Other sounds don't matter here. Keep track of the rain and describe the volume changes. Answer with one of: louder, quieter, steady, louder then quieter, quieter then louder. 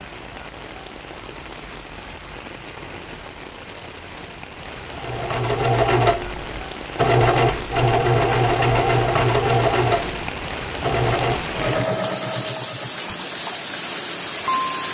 louder.